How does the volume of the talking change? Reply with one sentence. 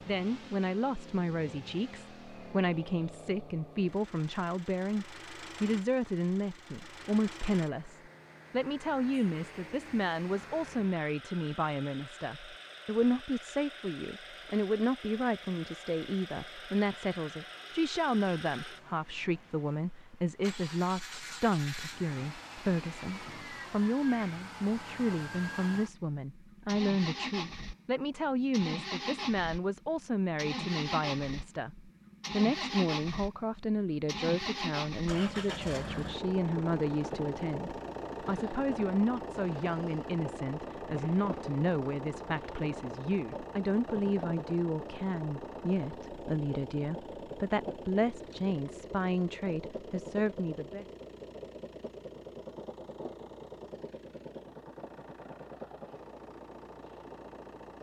The volume of the talking stays about the same.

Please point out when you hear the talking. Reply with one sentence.
You can hear the talking from 0.1 to 50.9 s.